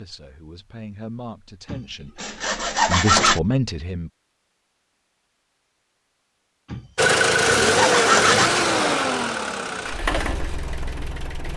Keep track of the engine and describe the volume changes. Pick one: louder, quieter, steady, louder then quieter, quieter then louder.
quieter.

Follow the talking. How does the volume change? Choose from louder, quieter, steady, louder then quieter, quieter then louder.
louder.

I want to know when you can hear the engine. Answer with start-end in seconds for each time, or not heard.
7.0-11.5.